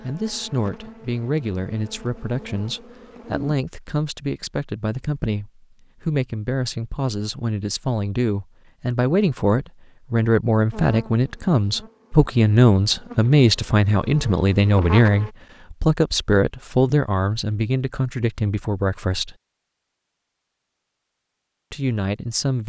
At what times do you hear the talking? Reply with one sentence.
You can hear the talking from 0.0 to 19.4 s and from 21.7 to 22.6 s.